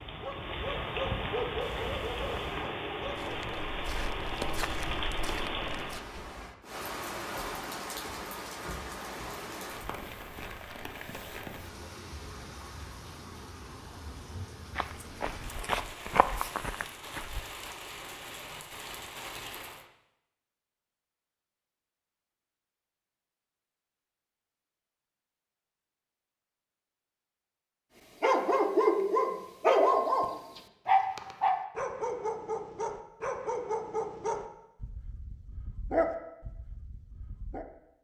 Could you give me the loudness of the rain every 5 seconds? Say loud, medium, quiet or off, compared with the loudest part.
loud, loud, medium, medium, off, off, off, off.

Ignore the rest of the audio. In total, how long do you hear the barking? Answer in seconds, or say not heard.
13 s.